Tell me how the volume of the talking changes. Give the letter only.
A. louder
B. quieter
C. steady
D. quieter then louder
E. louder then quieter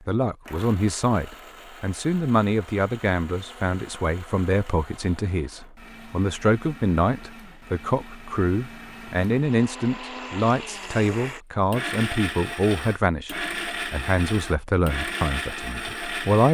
C.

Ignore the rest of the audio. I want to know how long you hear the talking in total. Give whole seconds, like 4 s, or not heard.
16 s.